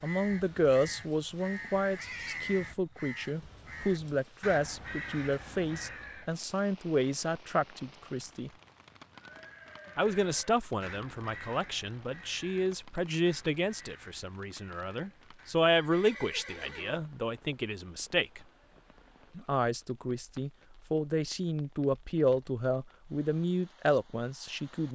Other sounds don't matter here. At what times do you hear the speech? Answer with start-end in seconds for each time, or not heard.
0.0-8.5, 9.9-18.4, 19.4-24.9.